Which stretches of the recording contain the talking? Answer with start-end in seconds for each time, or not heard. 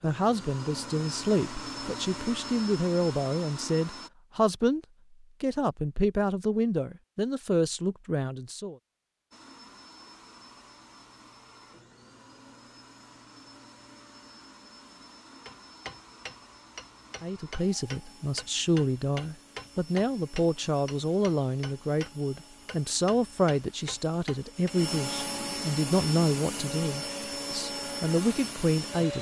0.0-4.8, 5.4-8.8, 17.2-29.1.